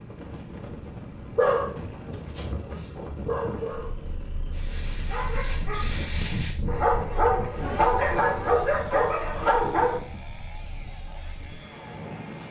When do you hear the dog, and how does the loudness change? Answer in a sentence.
You can hear the dog from 1.3 to 10.0 s, getting louder.